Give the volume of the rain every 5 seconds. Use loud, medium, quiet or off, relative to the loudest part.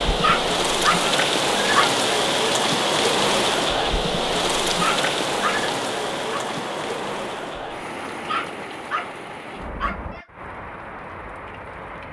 loud, medium, quiet.